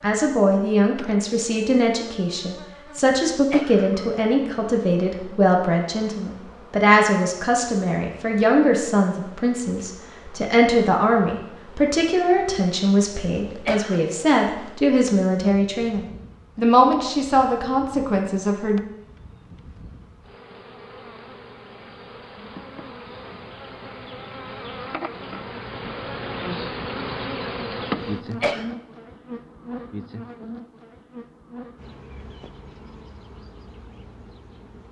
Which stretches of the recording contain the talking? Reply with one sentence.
You can hear the talking from 0.0 to 18.8 s.